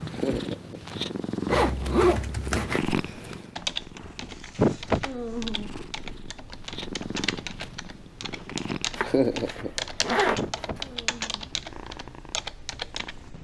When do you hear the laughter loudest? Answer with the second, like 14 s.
9 s.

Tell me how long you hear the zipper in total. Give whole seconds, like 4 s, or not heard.
3 s.